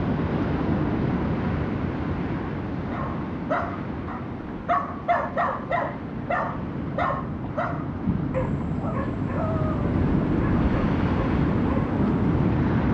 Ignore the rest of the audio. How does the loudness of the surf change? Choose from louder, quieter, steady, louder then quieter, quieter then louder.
quieter then louder.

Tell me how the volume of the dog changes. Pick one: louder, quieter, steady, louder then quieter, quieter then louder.
quieter.